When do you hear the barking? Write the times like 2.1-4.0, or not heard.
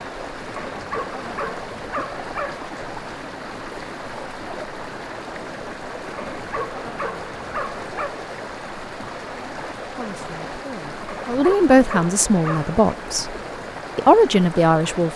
0.6-2.5, 6.2-8.1, 11.1-12.7.